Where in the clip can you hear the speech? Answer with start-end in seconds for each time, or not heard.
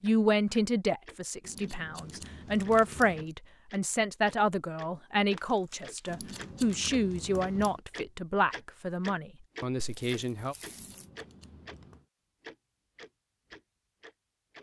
0.0-10.6.